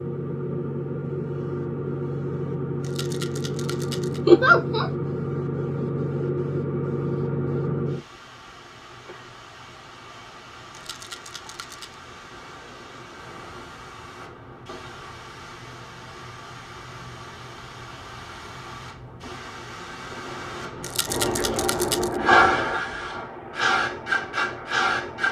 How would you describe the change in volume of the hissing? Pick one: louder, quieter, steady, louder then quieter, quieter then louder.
quieter then louder.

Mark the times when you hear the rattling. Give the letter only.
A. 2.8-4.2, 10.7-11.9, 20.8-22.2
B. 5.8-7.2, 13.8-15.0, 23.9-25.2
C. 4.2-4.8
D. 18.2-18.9
A.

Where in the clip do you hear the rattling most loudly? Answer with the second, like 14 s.
21 s.